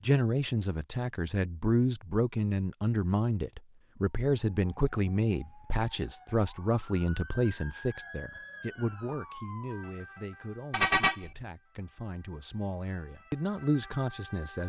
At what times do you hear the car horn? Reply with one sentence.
You can hear the car horn from 10.7 to 11.4 s.